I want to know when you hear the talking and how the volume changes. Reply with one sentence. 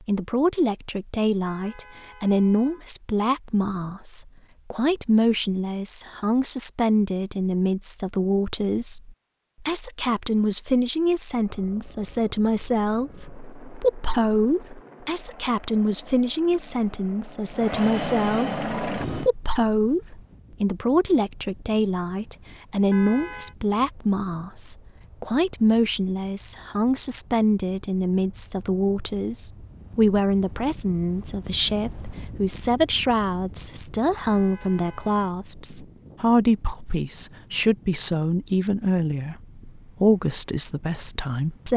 You can hear the talking from 0.1 to 41.7 s, at a steady volume.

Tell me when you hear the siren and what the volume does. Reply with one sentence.
You can't hear the siren here.